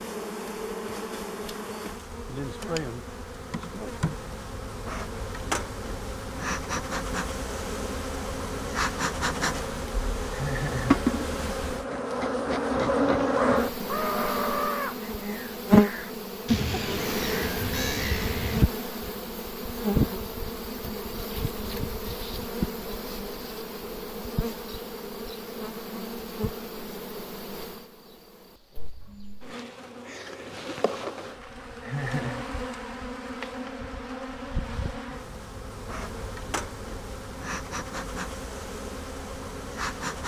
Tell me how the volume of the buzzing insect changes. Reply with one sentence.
The volume of the buzzing insect goes up, then down.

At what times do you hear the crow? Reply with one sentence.
You can hear the crow from 13.2 to 18.6 s.